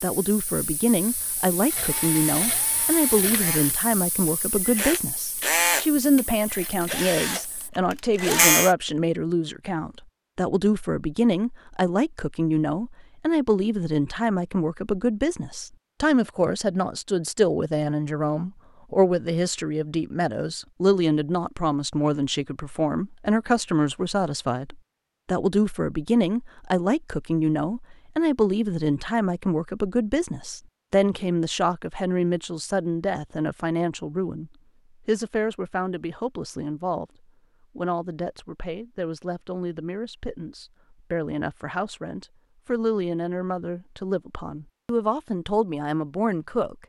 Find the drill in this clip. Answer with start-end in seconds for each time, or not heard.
1.6-8.8.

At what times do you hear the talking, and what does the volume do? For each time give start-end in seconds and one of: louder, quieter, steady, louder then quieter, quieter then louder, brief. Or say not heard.
0.0-37.0 steady
37.8-46.8 louder.